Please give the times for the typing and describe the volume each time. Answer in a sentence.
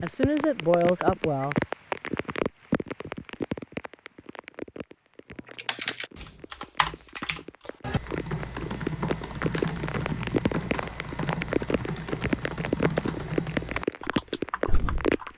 The typing can be heard from 5.5 to 15.3 s, at a steady volume.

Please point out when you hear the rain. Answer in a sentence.
The rain can be heard from 0.0 to 15.3 s.